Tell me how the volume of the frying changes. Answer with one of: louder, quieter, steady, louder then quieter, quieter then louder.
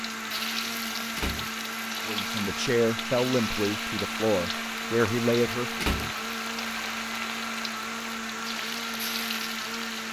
steady.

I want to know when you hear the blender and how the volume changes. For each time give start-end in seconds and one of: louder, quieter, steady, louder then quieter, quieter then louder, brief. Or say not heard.
0.0-10.0 steady.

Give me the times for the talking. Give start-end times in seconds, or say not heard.
2.0-5.8.